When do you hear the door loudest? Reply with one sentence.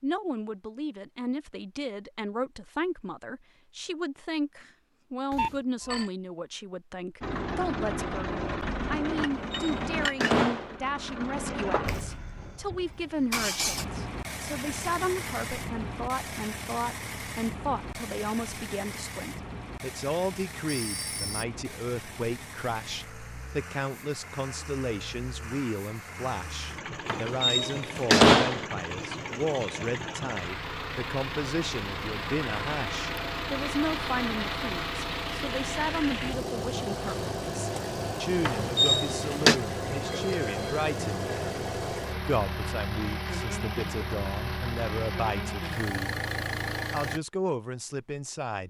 The loudest moment of the door is at 28 seconds.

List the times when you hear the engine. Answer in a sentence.
The engine can be heard from 7.2 to 47.2 s.